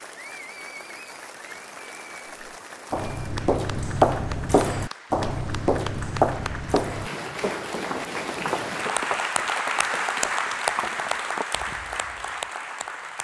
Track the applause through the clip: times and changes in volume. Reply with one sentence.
The applause can be heard from 0.0 to 13.1 s, getting louder.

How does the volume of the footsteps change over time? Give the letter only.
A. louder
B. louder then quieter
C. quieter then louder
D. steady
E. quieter
E.